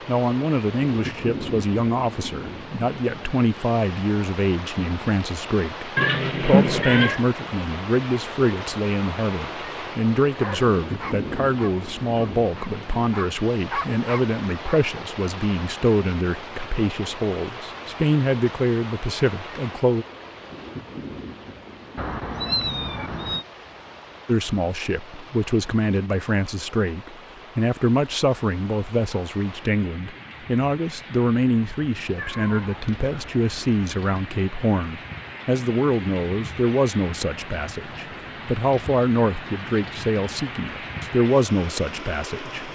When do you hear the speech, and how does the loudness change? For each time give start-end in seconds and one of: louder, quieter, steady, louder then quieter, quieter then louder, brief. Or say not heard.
0.1-20.1 steady
24.2-42.7 steady.